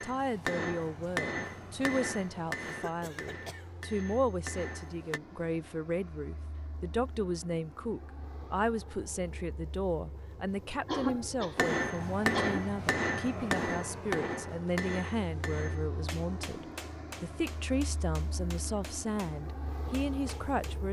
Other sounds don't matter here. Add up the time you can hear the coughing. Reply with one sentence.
You can hear the coughing for 3 seconds altogether.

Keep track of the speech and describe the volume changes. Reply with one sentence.
The loudness of the speech stays about the same.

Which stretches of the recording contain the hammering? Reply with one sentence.
The hammering can be heard from 0.0 to 5.2 s and from 11.6 to 20.8 s.